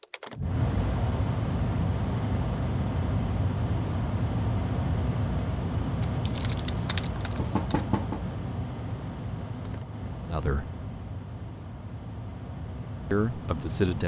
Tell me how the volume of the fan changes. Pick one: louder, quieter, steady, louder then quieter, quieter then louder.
quieter.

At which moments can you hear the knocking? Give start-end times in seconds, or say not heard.
7.3-8.3.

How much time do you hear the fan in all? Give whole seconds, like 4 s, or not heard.
14 s.